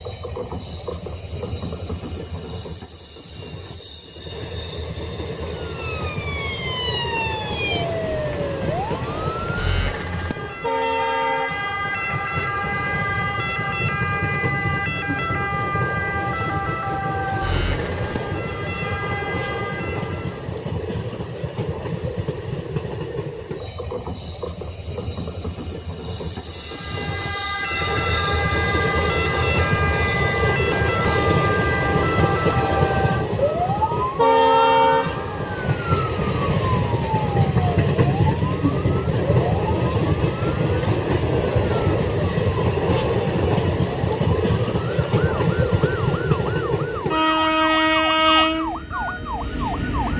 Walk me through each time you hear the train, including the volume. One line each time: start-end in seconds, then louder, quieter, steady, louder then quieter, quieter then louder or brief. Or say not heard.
0.0-50.1 louder.